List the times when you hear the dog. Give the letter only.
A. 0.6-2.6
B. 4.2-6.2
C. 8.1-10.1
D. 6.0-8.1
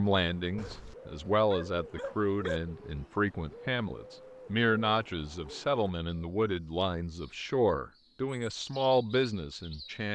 A.